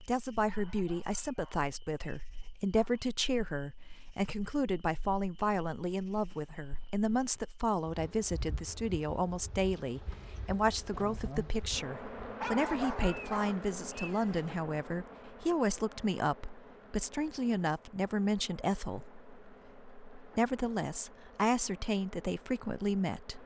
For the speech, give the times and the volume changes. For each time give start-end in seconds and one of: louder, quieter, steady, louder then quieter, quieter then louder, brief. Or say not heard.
0.0-23.4 steady.